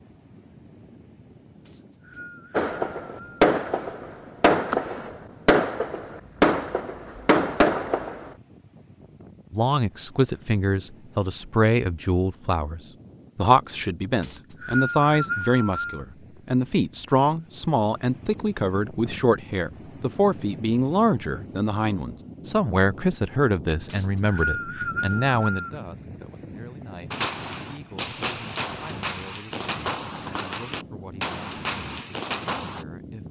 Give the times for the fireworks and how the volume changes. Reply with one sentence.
You can hear the fireworks from 2.5 to 8.3 s, at a steady volume; and from 27.1 to 32.9 s, at a steady volume.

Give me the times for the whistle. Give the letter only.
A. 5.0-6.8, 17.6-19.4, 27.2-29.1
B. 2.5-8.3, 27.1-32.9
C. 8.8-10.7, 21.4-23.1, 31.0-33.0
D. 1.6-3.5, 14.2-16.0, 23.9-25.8
D.